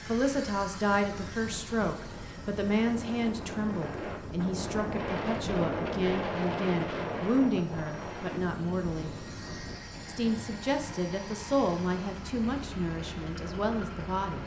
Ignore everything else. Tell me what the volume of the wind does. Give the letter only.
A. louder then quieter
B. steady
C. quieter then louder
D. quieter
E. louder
A.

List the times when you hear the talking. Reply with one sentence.
The talking can be heard from 0.1 to 9.2 s and from 10.1 to 14.4 s.